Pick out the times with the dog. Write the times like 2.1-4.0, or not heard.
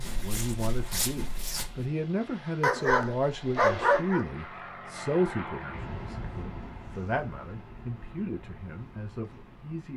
2.6-4.2.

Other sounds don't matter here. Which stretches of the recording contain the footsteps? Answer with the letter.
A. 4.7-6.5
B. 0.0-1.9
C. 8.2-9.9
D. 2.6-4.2
B.